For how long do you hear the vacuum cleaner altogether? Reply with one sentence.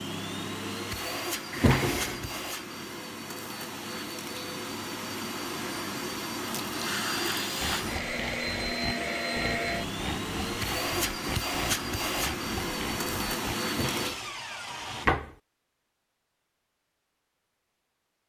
You can hear the vacuum cleaner for 14 seconds altogether.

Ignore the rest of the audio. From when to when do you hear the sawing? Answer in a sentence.
The sawing can be heard from 7.6 to 15.1 s.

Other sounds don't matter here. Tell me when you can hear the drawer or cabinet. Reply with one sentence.
The drawer or cabinet can be heard from 1.5 to 2.4 s and from 13.7 to 15.3 s.